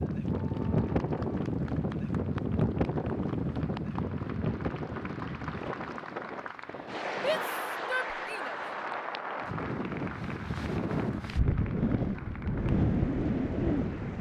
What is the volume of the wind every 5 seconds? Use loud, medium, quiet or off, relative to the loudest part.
loud, medium, loud.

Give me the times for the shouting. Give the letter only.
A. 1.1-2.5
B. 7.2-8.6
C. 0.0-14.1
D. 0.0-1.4
B.